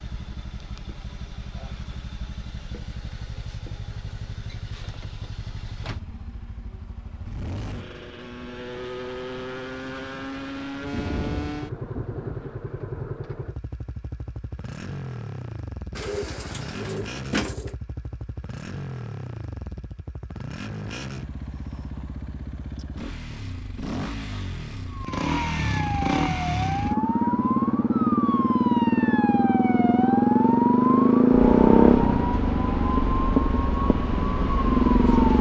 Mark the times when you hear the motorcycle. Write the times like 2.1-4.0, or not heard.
0.0-35.3.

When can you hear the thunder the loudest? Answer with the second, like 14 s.
11 s.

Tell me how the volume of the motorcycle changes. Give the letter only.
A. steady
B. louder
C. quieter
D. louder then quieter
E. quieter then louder
B.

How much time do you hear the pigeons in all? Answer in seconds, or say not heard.
2 s.